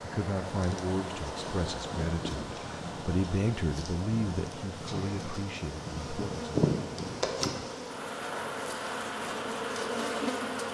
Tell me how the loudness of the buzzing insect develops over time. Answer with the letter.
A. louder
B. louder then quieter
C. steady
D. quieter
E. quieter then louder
A.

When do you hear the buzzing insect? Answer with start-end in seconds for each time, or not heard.
0.0-10.7.